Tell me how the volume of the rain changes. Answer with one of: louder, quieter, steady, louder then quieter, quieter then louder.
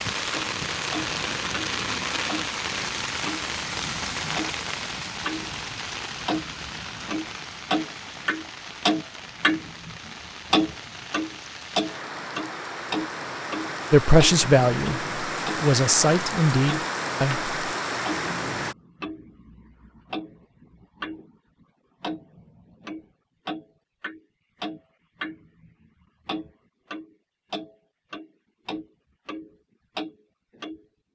quieter then louder.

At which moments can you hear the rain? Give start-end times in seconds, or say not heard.
0.0-18.8.